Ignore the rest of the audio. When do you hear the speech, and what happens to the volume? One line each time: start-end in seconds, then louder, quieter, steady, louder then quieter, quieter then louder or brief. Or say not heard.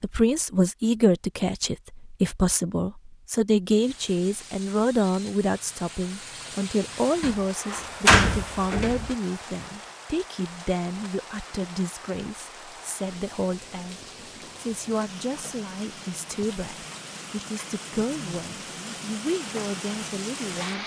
0.0-20.8 quieter.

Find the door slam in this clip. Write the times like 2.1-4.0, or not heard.
7.2-9.1.